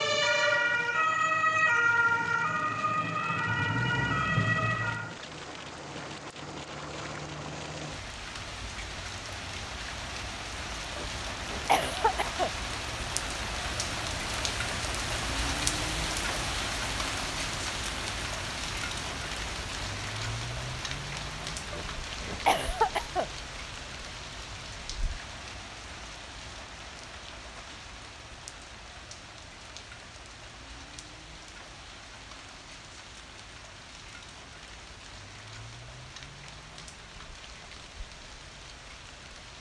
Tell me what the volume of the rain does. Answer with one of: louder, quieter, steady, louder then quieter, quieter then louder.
louder then quieter.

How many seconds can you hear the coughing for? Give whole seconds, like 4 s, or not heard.
3 s.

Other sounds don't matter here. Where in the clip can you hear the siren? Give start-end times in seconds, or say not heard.
0.0-5.2.